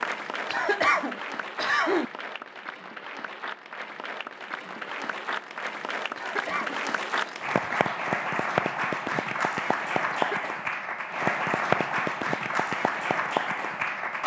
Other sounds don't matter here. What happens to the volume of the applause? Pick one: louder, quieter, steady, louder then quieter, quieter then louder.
louder.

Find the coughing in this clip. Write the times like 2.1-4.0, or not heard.
0.5-2.0, 6.2-7.3, 10.1-10.6.